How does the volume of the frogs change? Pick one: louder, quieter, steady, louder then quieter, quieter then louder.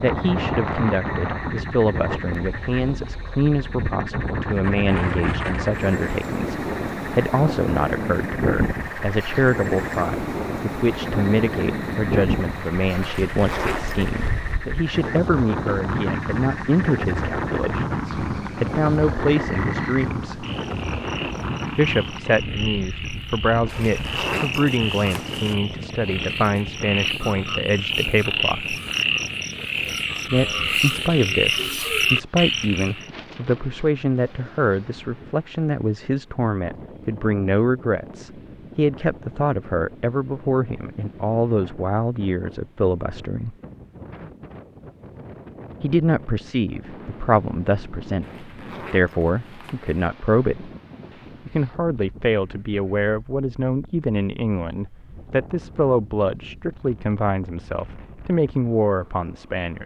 louder.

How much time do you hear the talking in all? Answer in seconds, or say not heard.
54 s.